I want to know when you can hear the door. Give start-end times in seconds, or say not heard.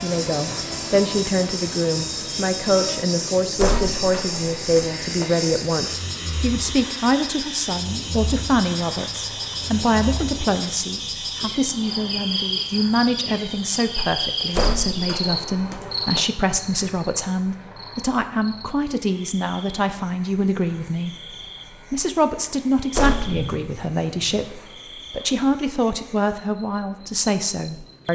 3.5-5.3, 14.6-16.3, 22.9-23.6.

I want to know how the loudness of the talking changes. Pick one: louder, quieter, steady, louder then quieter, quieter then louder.
steady.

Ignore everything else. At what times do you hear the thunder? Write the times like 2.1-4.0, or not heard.
23.2-24.5.